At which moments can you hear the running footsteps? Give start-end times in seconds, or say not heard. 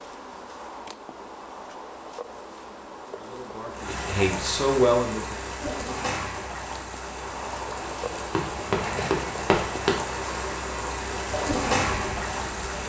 8.3-10.0.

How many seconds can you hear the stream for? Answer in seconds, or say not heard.
9 s.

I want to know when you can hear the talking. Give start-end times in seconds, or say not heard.
3.0-5.3.